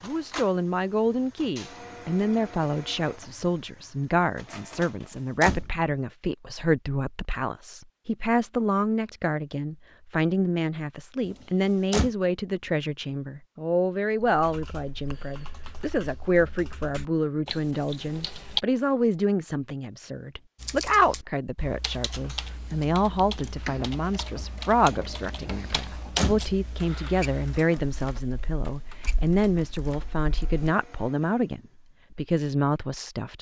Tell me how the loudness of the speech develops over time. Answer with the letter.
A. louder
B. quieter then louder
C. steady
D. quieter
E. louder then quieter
C.